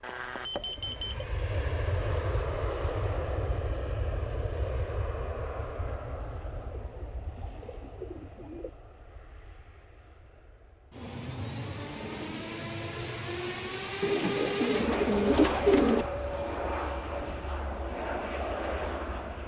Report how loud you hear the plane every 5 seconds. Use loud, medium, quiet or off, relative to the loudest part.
loud, medium, loud, loud.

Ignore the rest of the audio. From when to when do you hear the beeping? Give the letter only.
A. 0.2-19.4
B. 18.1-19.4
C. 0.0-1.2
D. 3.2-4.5
C.